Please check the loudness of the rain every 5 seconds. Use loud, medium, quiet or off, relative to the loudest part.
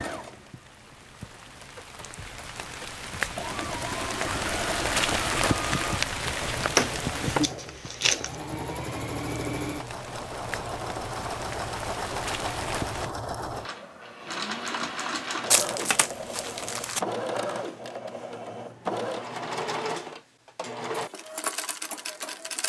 medium, loud, medium, off, off.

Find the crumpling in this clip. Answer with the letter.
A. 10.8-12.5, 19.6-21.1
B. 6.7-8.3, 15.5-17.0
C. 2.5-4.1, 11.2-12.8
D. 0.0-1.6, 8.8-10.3
B.